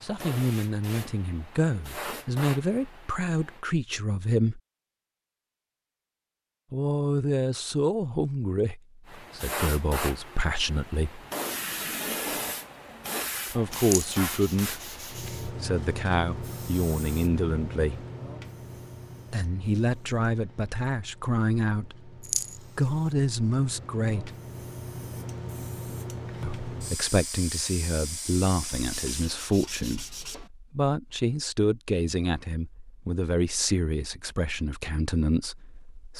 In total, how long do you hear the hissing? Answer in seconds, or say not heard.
24 s.